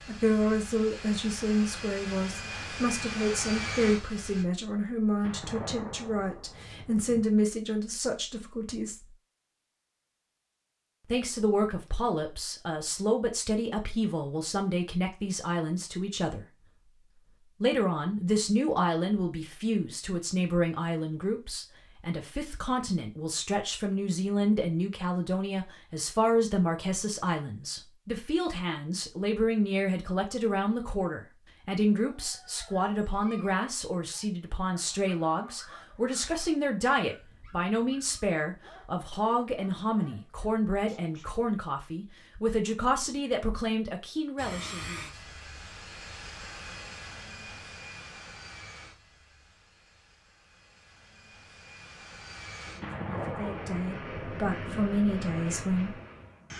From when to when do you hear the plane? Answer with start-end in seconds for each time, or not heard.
0.0-4.5, 44.4-56.5.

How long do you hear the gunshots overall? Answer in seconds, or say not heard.
4 s.